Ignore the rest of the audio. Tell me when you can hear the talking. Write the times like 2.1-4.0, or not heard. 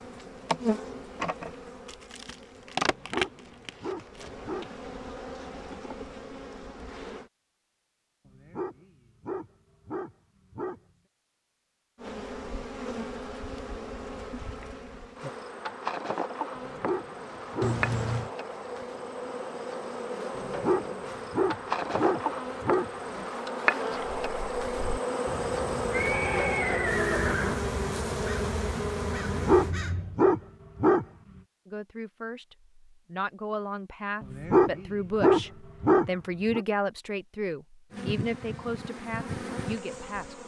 31.6-40.4.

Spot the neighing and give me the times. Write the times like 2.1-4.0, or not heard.
17.6-18.3, 25.9-27.7.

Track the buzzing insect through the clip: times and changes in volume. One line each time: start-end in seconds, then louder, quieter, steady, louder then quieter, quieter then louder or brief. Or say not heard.
0.0-7.3 quieter
11.9-29.8 louder
37.9-40.4 brief.